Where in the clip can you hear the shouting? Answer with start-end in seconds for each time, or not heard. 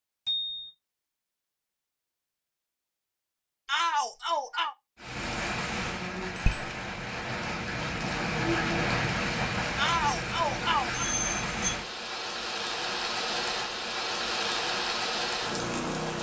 3.6-4.8, 9.8-11.1.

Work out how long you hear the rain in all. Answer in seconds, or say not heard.
11 s.